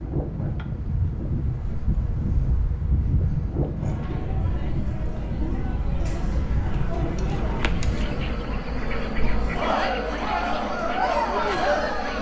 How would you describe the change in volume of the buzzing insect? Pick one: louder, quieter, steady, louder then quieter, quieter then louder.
louder.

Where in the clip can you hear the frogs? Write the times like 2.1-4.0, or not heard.
not heard.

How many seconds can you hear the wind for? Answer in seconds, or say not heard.
8 s.